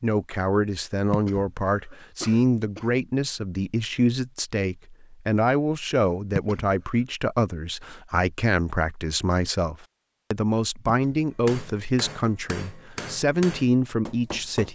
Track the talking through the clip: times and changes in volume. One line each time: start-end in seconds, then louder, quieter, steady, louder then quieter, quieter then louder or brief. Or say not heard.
0.0-14.7 steady.